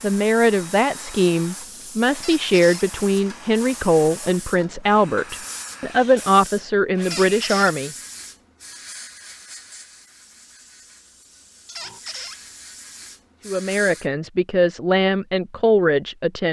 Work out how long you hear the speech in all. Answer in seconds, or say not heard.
11 s.